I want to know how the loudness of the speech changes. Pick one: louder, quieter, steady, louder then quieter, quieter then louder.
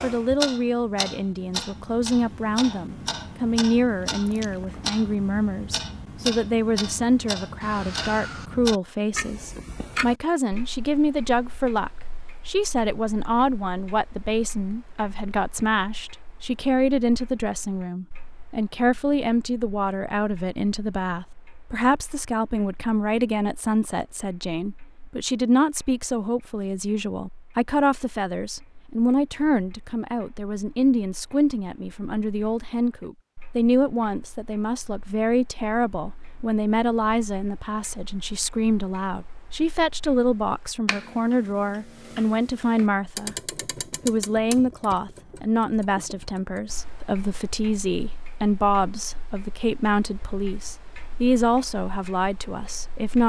steady.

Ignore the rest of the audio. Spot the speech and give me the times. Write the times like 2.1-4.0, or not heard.
0.0-43.4, 44.0-53.2.